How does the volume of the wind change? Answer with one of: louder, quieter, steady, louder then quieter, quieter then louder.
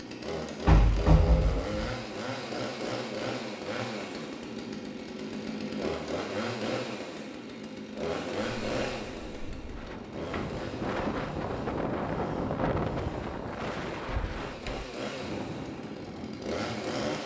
louder then quieter.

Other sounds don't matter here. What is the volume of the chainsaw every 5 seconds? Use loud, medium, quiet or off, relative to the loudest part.
loud, loud, medium, loud.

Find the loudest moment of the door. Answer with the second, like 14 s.
1 s.